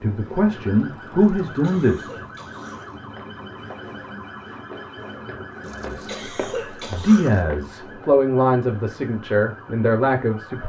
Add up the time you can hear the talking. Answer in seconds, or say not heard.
7 s.